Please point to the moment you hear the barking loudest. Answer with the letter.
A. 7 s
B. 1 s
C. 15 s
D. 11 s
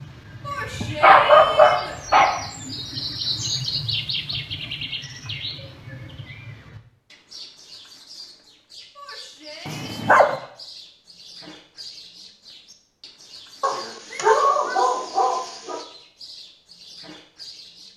B.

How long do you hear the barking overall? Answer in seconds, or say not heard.
4 s.